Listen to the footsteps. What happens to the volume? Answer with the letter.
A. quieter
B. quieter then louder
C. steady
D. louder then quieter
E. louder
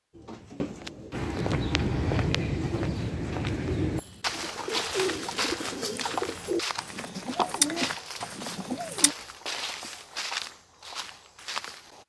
A.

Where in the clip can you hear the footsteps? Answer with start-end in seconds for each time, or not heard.
1.1-12.0.